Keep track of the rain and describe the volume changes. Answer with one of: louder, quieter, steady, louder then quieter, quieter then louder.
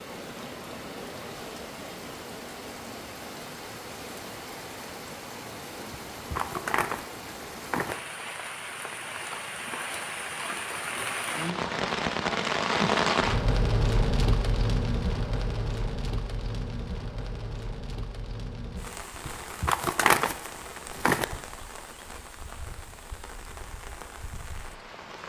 louder then quieter.